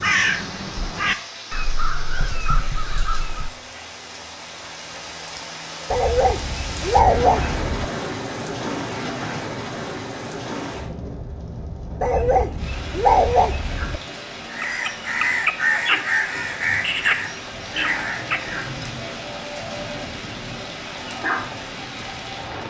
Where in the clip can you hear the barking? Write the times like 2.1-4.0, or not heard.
5.9-7.8, 12.0-14.0.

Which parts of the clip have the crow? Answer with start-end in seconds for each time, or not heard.
0.0-3.5, 14.5-18.7.